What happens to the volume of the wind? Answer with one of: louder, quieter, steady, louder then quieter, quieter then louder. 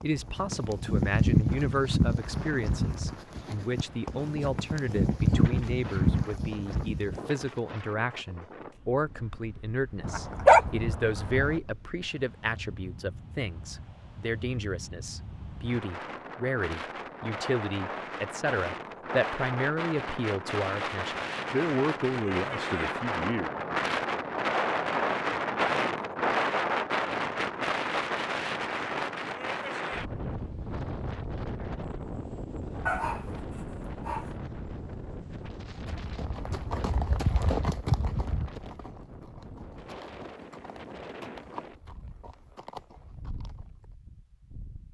louder then quieter.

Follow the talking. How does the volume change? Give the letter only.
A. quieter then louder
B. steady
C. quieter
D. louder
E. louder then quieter
B.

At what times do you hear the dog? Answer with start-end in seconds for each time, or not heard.
10.0-11.6, 32.9-34.2.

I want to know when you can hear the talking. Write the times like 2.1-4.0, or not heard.
0.0-23.5.